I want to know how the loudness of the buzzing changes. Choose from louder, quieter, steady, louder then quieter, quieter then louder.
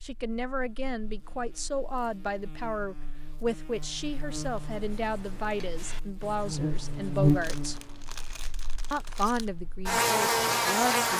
louder.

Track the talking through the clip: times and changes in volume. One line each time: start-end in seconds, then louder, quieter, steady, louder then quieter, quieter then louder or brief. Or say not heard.
0.0-7.8 steady
8.9-11.1 brief.